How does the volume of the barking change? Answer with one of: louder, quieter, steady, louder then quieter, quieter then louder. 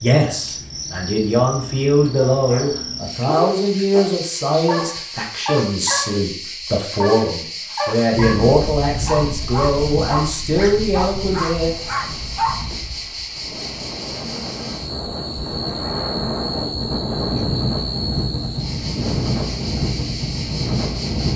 steady.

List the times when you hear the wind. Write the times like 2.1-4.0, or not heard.
8.1-21.3.